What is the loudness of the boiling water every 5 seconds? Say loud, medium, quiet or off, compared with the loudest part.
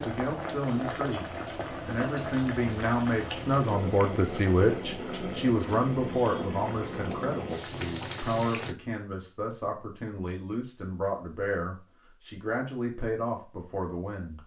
loud, loud, off.